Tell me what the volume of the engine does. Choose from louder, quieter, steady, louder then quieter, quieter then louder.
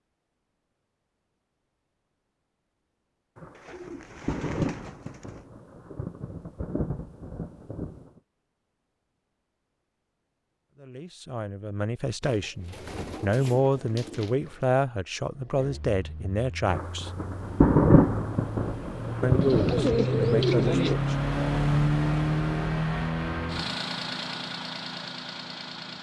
louder then quieter.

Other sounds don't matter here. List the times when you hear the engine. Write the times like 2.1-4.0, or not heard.
15.2-25.9.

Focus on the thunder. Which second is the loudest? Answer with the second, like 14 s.
18 s.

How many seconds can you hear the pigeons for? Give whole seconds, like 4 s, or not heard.
6 s.